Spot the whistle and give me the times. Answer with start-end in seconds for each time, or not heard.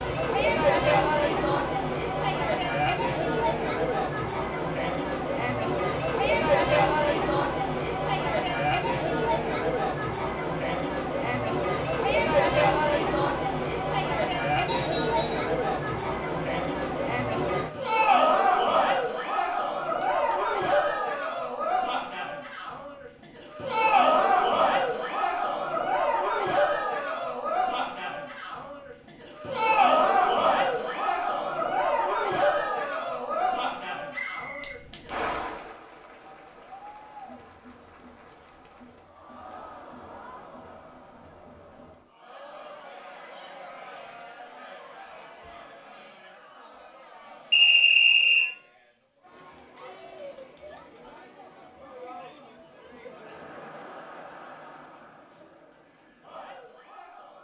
14.7-15.5, 34.1-34.8, 47.5-48.5.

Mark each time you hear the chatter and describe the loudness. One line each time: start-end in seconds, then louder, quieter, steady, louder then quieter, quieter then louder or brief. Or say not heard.
0.0-57.4 quieter.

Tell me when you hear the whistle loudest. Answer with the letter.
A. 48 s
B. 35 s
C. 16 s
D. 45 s
A.